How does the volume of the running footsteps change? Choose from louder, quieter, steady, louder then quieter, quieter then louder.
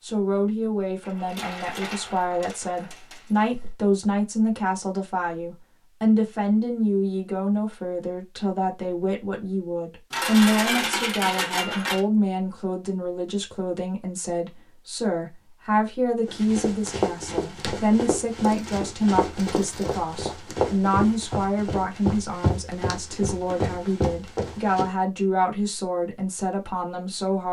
steady.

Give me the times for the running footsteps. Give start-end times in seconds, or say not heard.
16.2-24.9.